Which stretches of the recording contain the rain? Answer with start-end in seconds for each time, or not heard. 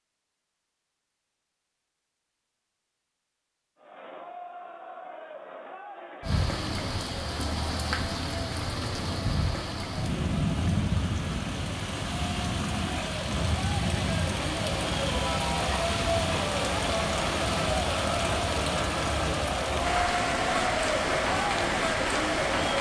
6.2-22.7.